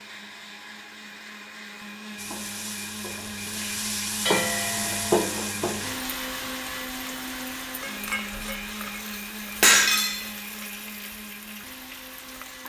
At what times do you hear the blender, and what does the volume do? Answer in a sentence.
You can hear the blender from 0.0 to 12.6 s, getting louder then quieter.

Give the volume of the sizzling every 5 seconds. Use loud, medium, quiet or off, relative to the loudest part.
loud, loud, quiet.